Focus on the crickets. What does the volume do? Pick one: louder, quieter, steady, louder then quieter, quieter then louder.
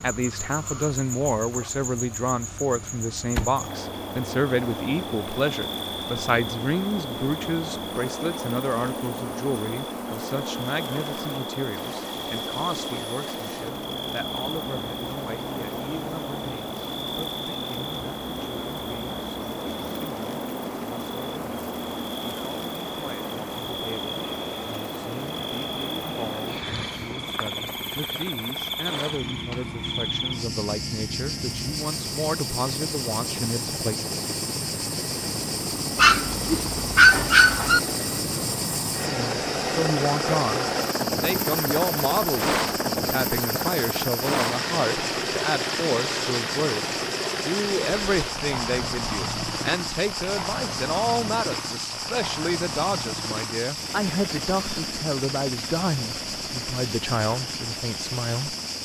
steady.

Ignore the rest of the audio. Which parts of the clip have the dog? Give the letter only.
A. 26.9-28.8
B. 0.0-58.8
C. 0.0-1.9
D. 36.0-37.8
D.